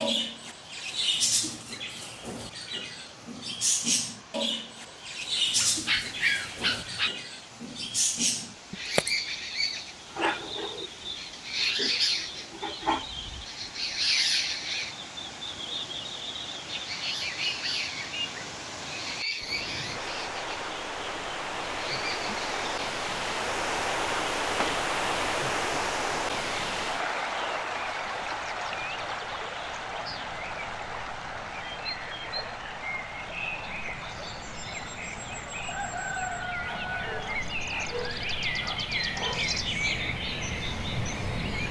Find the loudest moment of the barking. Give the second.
6 s.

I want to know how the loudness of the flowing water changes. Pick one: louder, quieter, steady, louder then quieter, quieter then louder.
louder then quieter.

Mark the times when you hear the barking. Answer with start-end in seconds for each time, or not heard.
5.5-7.1, 36.6-39.5.